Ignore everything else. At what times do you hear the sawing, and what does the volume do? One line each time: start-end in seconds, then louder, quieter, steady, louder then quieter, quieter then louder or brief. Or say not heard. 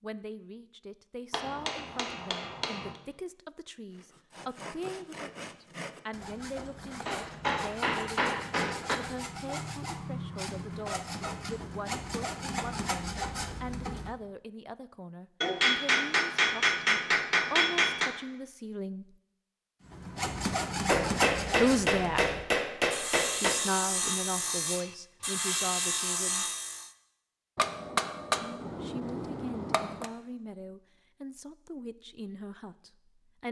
3.9-14.2 louder
19.9-26.9 quieter then louder.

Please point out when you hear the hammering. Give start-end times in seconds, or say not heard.
1.3-3.0, 7.0-8.9, 15.4-18.1, 20.9-23.6, 27.6-30.1.